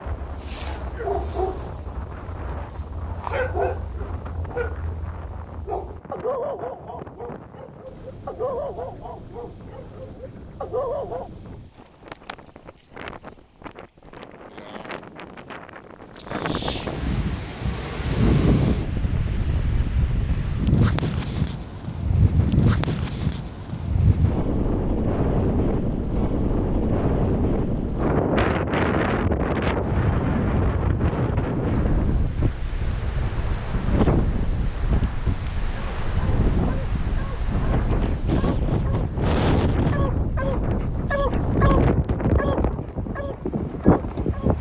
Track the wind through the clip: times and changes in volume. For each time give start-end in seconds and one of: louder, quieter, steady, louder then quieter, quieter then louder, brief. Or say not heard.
0.0-44.5 louder.